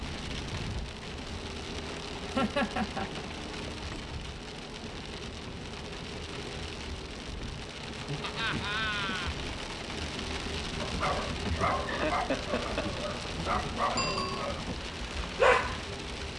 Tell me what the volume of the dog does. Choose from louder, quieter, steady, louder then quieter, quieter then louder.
louder.